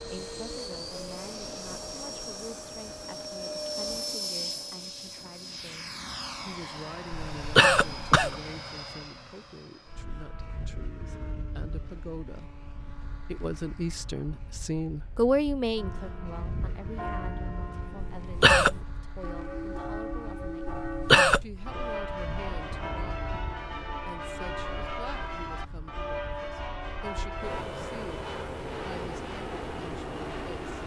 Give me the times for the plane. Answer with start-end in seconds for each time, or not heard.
0.0-30.8.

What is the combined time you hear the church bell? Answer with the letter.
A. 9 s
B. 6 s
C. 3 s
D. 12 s
D.